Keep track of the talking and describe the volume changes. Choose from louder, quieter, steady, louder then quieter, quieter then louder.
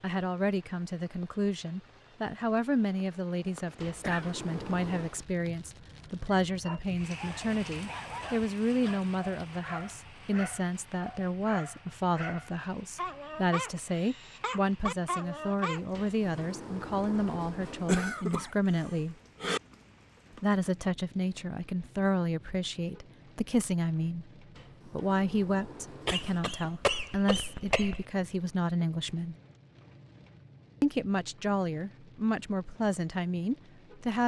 steady.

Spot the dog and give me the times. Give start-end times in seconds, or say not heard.
6.5-16.1.